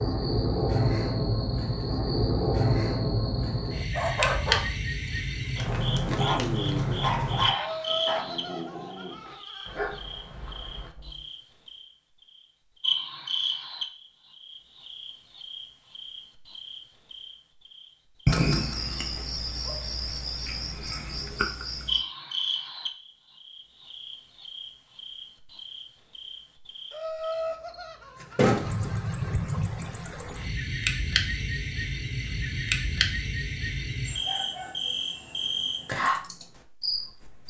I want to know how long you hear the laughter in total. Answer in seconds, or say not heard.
5 s.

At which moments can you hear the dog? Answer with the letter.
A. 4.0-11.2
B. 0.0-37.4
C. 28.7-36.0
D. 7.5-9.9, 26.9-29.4
A.